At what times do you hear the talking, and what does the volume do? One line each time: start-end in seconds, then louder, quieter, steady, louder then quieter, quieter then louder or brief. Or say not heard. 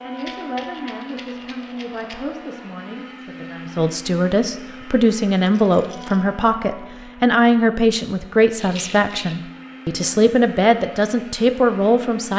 0.0-12.3 louder.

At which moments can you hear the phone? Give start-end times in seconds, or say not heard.
not heard.